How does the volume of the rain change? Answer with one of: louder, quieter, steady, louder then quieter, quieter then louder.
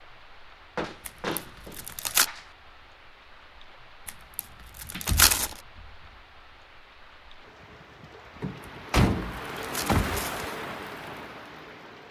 louder.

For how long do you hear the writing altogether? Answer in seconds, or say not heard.
not heard.